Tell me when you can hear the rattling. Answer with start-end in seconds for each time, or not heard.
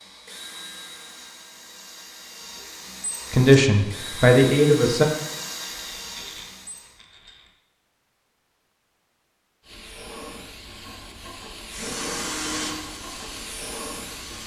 5.8-7.5.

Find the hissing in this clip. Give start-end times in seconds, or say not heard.
9.6-14.4.